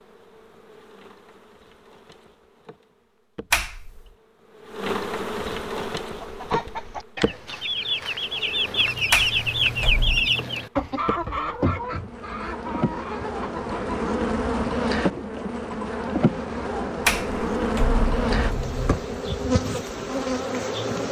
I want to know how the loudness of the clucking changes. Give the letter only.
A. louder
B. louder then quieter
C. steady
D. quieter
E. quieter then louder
B.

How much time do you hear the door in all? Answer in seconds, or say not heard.
4 s.